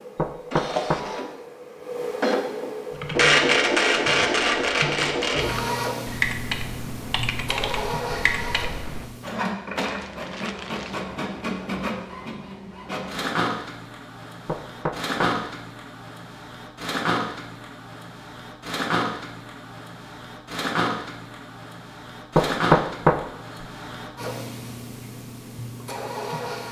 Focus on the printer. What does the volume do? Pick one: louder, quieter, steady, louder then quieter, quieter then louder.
quieter.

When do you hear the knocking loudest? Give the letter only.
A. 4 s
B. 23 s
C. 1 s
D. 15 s
B.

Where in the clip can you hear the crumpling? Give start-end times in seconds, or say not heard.
9.8-11.1.